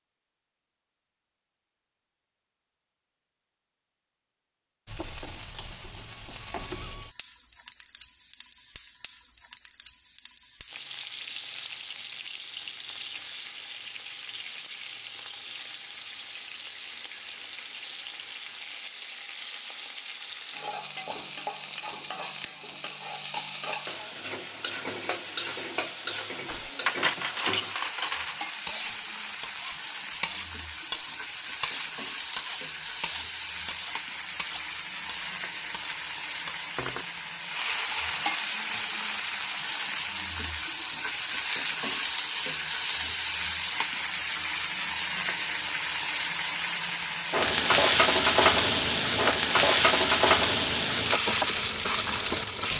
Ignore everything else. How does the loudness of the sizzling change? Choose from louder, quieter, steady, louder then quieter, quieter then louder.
louder.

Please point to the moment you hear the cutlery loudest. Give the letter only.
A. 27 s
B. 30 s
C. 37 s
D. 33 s
A.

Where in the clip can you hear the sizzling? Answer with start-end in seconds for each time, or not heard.
4.8-52.7.